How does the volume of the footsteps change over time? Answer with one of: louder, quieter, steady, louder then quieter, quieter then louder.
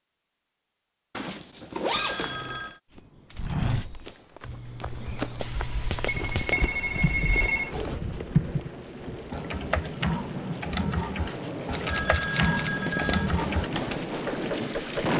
quieter.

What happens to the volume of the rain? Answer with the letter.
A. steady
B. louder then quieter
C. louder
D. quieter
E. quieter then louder
C.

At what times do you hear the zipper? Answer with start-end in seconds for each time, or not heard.
1.1-2.5, 7.2-8.0, 11.2-13.2.